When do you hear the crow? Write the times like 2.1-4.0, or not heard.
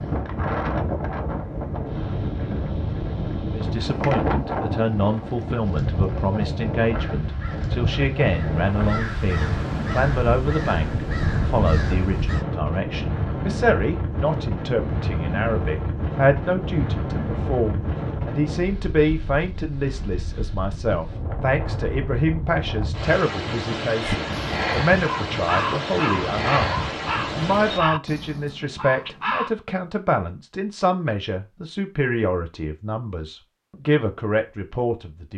7.0-12.4, 24.0-29.5.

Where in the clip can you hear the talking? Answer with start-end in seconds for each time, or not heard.
3.5-35.3.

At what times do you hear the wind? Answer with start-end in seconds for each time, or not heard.
0.0-27.8.